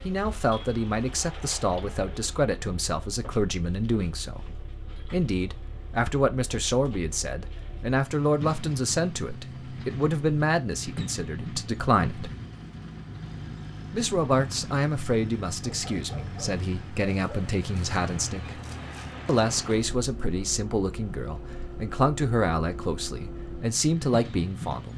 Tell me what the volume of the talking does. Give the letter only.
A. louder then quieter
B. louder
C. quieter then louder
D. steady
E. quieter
D.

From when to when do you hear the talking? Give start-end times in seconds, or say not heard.
0.0-12.3, 13.9-18.5, 19.2-24.9.